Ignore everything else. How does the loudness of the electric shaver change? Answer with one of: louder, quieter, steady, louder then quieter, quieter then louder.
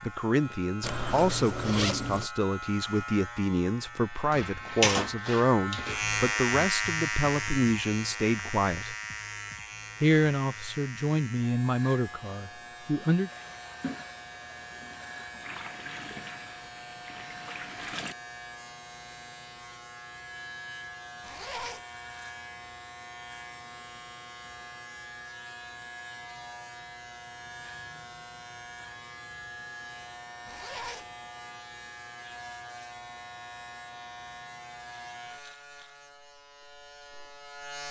quieter.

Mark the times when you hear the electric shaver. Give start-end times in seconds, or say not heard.
0.0-37.8.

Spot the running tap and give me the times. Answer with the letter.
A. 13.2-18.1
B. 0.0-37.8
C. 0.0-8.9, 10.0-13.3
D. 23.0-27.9
A.